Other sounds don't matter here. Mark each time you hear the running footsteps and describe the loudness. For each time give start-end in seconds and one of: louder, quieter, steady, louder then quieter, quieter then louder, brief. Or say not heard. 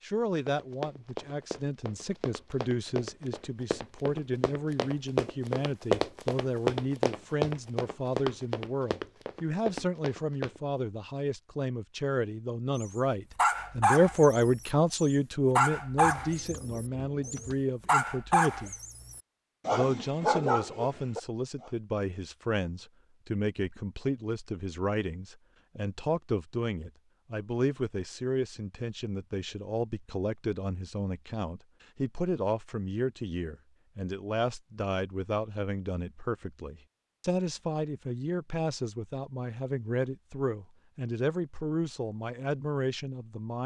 0.5-10.6 louder then quieter.